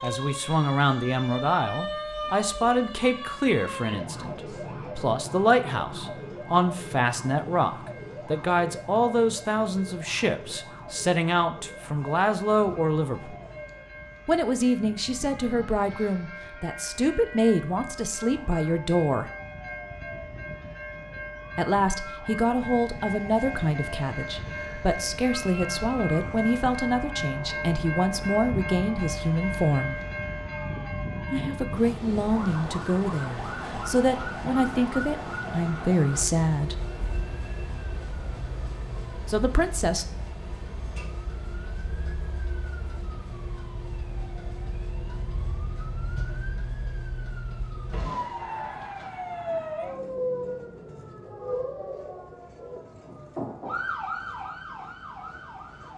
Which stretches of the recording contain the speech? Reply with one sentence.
The speech can be heard from 0.0 to 13.3 s, from 14.2 to 19.3 s, from 21.6 to 30.0 s, from 31.3 to 36.8 s and from 39.2 to 40.0 s.